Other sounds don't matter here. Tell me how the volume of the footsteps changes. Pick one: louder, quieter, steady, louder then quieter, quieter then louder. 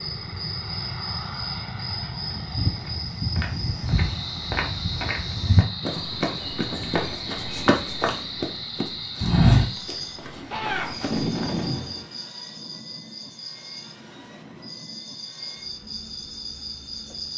louder.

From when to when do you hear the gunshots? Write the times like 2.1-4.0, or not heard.
10.5-12.1.